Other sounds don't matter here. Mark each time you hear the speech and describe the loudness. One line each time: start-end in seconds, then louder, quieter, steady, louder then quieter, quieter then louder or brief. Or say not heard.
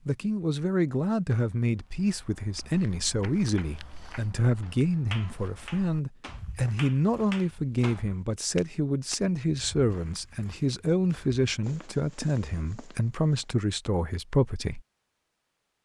0.1-14.8 steady.